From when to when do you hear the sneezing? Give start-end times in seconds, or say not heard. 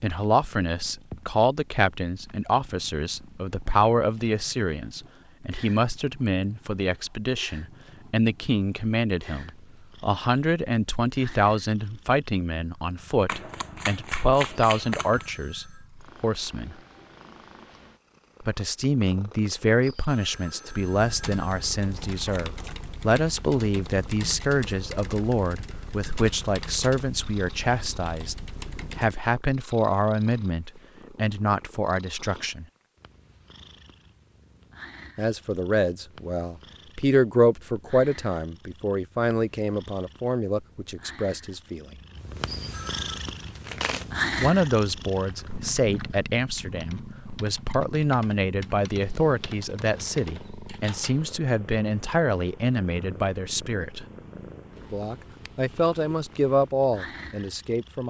not heard.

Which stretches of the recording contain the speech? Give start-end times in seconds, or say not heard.
0.0-16.8, 18.4-32.6, 35.1-42.0, 44.4-54.0, 54.9-58.0.